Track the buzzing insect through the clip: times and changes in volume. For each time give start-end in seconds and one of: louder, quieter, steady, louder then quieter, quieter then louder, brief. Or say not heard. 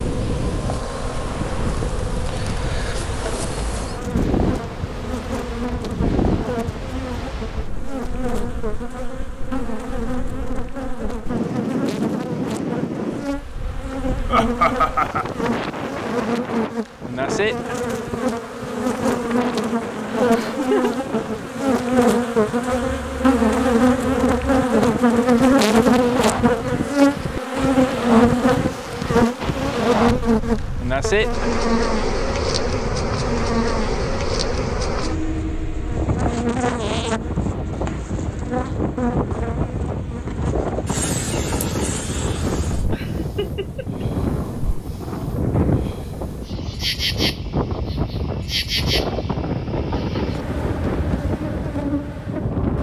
0.0-52.7 louder then quieter.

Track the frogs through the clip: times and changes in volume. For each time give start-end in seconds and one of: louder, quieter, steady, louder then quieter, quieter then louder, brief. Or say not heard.
not heard.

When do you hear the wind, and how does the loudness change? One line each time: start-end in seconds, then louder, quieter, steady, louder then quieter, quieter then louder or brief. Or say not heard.
0.0-52.7 steady.